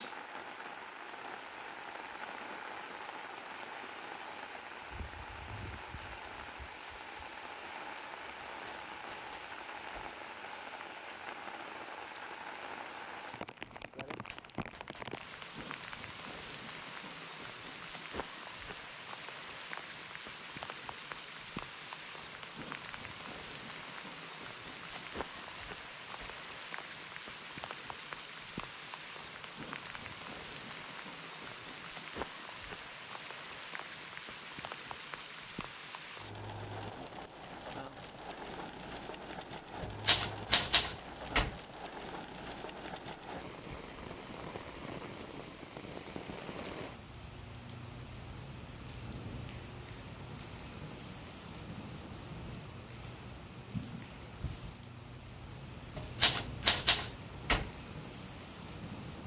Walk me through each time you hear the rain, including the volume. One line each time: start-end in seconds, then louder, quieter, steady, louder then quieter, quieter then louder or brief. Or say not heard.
0.0-59.2 steady.